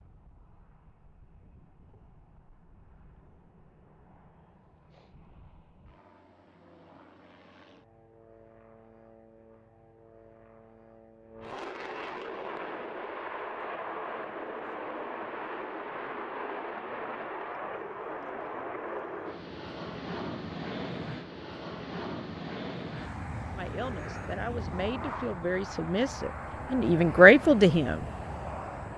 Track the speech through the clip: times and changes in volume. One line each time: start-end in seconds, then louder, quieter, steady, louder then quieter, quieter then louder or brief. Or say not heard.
23.6-28.1 louder.